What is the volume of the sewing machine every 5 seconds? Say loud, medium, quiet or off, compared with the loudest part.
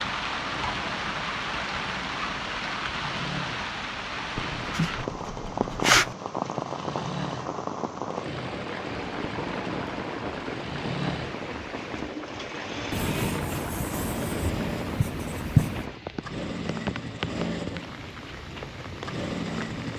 medium, medium, loud, loud.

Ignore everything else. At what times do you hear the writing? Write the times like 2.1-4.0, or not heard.
4.6-6.2, 12.9-15.8.